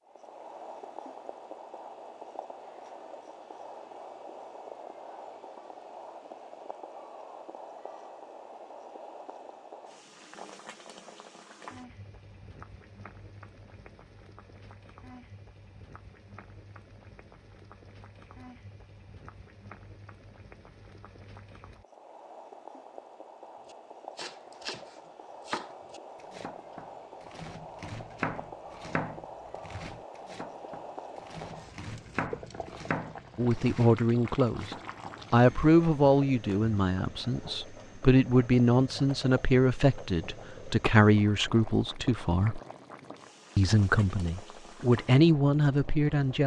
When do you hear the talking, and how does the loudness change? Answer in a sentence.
You can hear the talking from 33.4 to 42.6 s, at a steady volume; and briefly from 43.5 to 46.4 s.